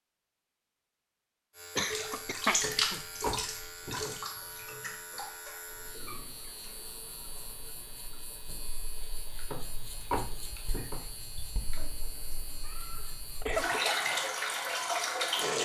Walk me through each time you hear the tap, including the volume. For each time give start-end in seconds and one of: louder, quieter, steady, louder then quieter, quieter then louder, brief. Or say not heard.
1.8-15.6 quieter then louder.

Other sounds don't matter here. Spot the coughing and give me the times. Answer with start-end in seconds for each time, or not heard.
1.8-3.0, 12.7-14.1.